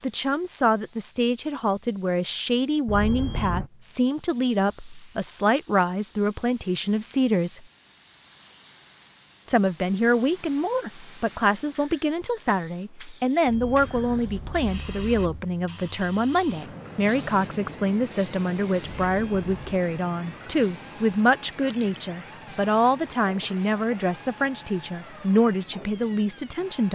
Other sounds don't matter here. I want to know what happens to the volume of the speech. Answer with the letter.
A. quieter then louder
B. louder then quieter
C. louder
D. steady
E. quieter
D.